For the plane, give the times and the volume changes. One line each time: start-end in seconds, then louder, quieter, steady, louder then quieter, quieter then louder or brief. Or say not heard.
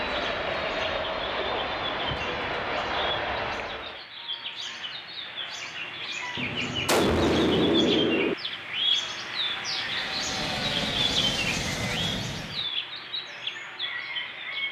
0.0-4.0 steady
9.8-12.7 brief.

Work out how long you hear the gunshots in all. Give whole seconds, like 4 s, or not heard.
2 s.